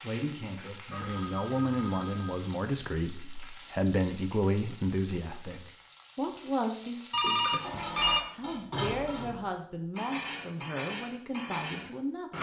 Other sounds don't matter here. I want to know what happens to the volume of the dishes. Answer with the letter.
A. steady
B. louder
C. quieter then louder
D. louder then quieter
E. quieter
A.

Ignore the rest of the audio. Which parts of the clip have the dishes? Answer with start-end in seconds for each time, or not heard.
7.5-12.3.